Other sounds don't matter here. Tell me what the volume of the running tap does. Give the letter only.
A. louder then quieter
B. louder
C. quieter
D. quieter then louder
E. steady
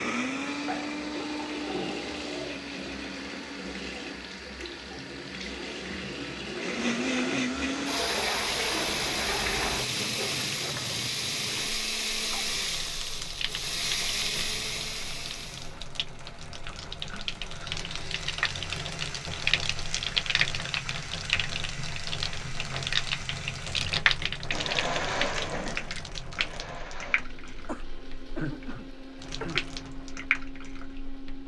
A.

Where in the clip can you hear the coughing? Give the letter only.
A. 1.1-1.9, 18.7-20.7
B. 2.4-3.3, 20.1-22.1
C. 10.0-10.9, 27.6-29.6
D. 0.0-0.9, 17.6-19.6
C.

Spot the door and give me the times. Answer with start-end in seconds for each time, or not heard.
not heard.